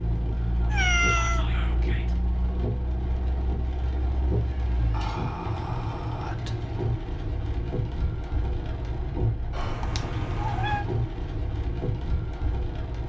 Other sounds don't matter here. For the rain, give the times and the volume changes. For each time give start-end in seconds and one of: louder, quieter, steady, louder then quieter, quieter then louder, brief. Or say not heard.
0.0-13.0 steady.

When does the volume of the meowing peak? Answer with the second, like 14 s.
1 s.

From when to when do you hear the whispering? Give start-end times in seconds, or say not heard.
1.1-2.1, 4.9-6.6, 9.5-9.9.